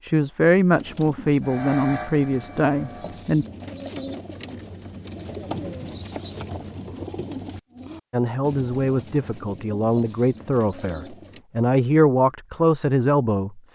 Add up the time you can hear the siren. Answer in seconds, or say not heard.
not heard.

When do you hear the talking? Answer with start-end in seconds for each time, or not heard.
0.0-3.5, 8.1-13.6.